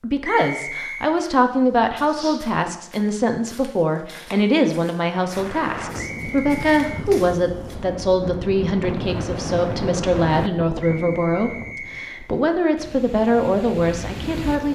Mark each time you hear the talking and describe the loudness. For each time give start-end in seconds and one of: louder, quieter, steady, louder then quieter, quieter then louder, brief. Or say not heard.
0.0-14.7 steady.